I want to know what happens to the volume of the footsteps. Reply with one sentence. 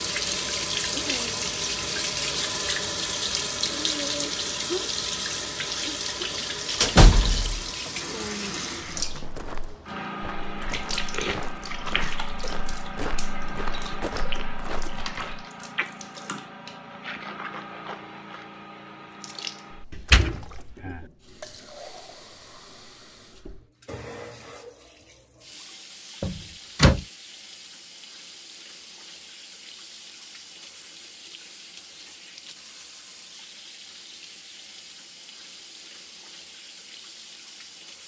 The volume of the footsteps stays about the same.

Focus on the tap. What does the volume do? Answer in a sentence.
The volume of the tap goes down.